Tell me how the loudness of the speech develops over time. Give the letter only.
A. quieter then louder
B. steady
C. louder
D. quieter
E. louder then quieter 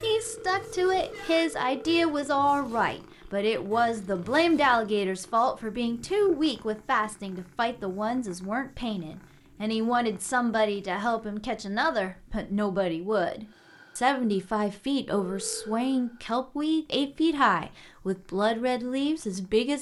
B.